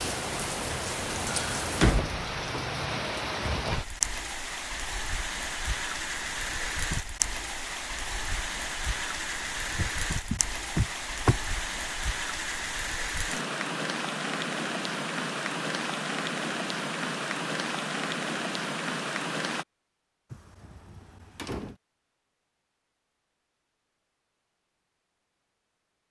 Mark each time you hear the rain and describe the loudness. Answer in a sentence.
You can hear the rain from 0.0 to 19.6 s, at a steady volume.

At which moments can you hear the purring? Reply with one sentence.
You can't hear the purring here.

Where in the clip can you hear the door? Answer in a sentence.
You can hear the door from 1.3 to 2.6 s, from 9.8 to 11.3 s and from 20.3 to 21.8 s.